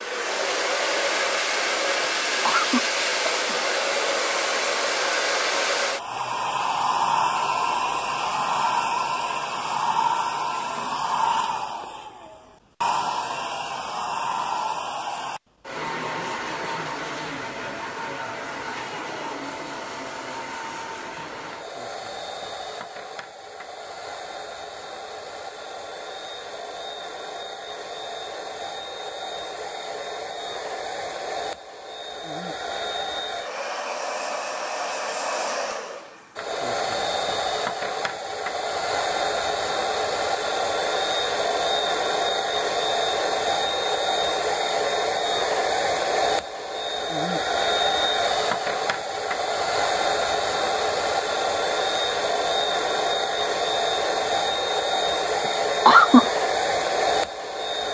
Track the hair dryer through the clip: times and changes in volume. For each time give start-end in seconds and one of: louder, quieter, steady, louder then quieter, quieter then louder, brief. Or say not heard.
0.0-57.9 quieter then louder.